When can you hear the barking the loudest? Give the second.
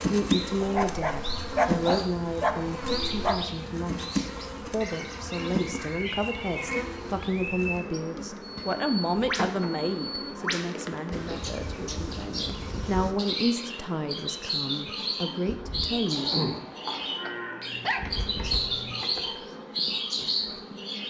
2 s.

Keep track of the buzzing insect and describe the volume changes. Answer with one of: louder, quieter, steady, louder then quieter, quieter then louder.
quieter.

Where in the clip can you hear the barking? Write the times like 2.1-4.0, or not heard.
0.6-3.5, 17.2-19.1.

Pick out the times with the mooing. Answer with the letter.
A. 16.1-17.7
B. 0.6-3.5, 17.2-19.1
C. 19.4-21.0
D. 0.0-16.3
A.